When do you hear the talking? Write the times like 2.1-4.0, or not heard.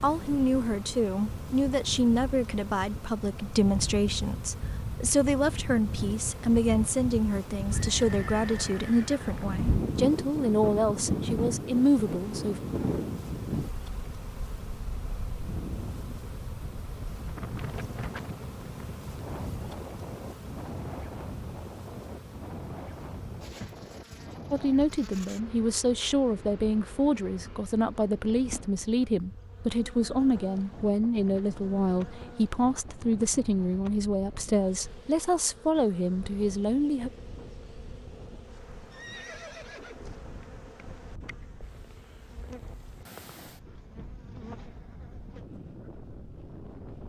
0.0-12.6, 24.5-37.1.